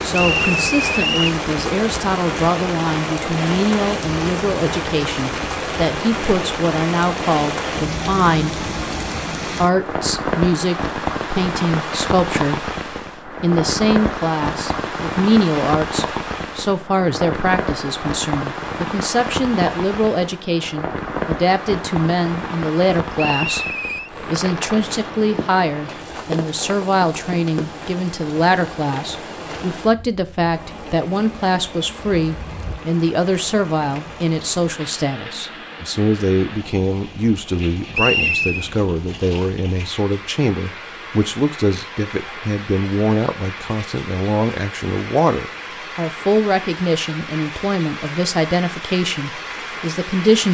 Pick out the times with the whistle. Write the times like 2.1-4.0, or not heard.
0.1-1.4, 23.1-24.1, 37.9-38.7.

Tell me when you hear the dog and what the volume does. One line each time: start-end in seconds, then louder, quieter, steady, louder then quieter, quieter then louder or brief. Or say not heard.
not heard.